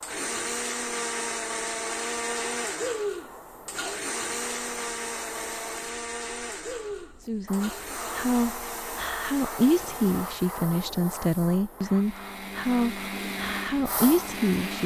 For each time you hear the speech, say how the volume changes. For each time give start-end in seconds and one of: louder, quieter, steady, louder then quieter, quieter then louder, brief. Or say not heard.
7.2-14.8 steady.